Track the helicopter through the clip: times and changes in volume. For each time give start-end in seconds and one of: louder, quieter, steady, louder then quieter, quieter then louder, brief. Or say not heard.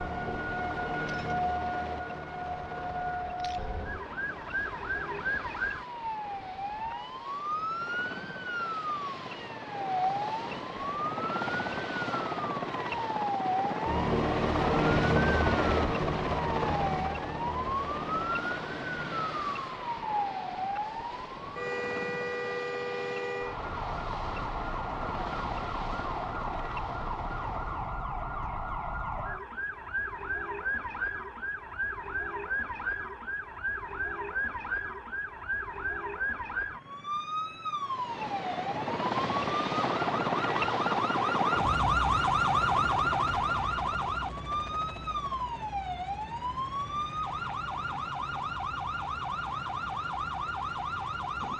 0.0-28.1 louder then quieter
37.9-51.5 quieter.